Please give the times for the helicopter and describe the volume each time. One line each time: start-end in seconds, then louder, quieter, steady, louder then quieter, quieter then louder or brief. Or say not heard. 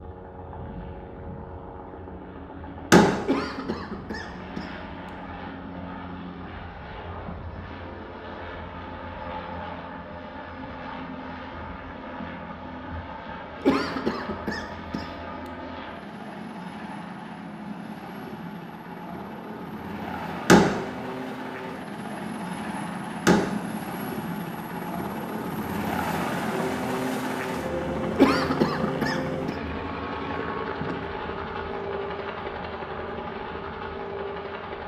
0.0-34.8 louder.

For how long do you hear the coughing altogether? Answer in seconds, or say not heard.
4 s.